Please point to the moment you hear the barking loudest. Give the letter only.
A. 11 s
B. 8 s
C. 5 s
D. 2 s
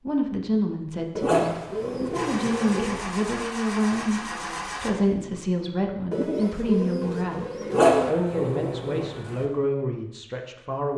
B.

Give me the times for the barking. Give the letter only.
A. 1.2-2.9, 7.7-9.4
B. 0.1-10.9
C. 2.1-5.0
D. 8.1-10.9
A.